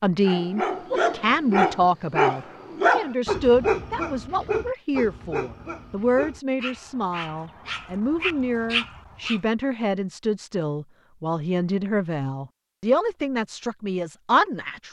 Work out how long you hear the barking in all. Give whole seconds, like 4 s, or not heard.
9 s.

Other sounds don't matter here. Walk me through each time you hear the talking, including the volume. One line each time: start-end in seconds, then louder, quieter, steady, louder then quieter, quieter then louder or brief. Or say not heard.
0.0-14.8 steady.